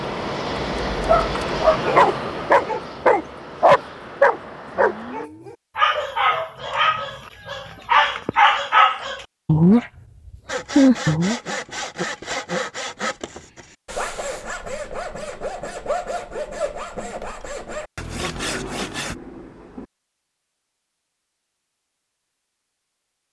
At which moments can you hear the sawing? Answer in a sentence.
You can hear the sawing from 10.4 to 19.1 s.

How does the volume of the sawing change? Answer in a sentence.
The volume of the sawing stays about the same.